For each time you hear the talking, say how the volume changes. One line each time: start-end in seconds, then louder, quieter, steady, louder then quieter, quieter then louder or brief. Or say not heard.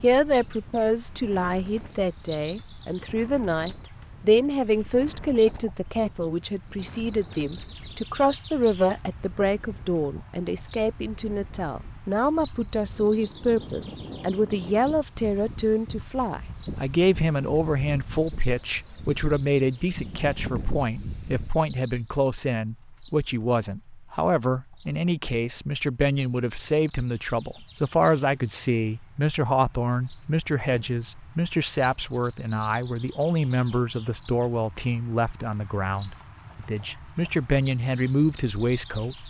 0.0-39.2 steady.